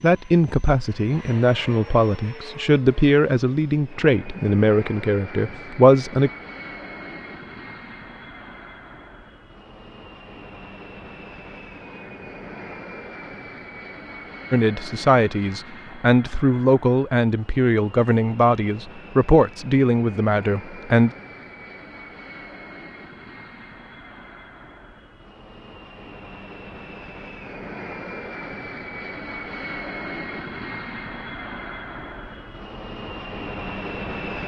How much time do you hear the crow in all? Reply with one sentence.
You can't hear the crow here.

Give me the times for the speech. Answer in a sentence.
The speech can be heard from 0.0 to 6.3 s and from 14.5 to 21.1 s.